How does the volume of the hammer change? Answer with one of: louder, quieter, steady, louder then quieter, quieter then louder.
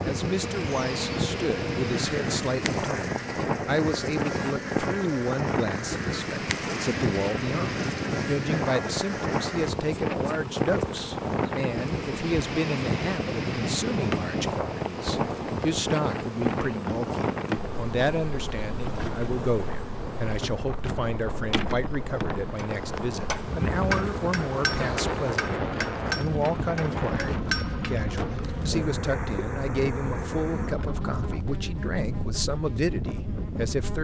quieter then louder.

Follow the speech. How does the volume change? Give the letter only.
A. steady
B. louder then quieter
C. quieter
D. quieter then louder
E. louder
A.